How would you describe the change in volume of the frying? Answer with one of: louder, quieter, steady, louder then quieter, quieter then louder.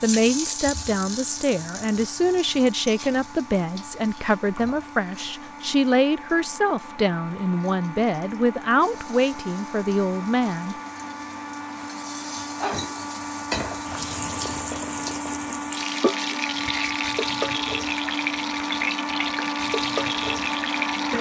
quieter then louder.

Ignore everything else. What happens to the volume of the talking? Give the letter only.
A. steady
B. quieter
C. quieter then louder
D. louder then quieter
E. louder
A.